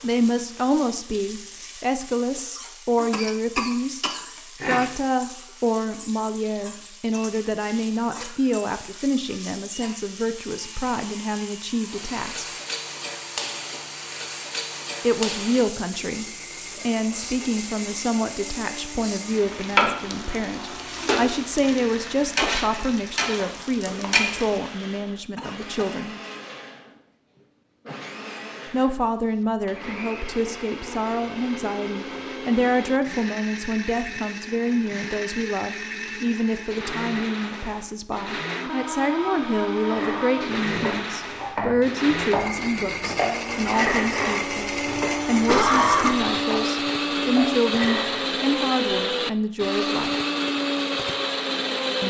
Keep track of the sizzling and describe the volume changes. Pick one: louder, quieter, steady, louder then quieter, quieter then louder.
louder.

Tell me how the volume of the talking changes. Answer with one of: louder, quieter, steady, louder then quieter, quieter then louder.
steady.